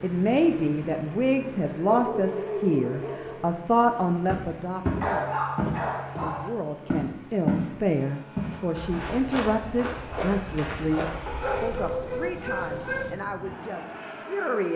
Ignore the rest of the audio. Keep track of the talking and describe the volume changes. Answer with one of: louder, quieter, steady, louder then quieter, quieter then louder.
quieter.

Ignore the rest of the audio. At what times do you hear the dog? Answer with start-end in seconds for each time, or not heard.
1.9-3.4, 5.0-6.5, 11.2-13.1.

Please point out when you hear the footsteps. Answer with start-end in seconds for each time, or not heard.
4.2-7.7, 8.3-11.2.